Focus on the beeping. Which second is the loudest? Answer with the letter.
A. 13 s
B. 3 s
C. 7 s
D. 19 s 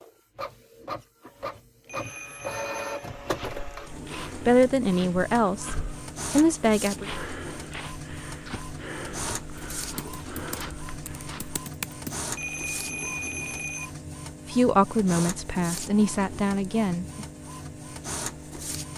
A.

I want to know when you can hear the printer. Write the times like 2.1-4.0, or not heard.
0.0-18.9.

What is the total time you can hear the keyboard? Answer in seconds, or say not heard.
2 s.